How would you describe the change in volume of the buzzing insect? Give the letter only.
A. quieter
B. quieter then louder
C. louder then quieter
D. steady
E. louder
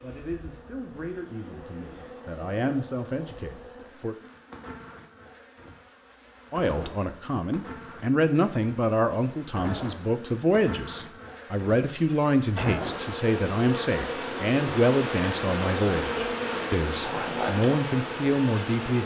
E.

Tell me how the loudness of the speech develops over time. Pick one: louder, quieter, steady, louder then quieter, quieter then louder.
louder.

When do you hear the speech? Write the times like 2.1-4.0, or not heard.
0.0-4.2, 6.5-19.0.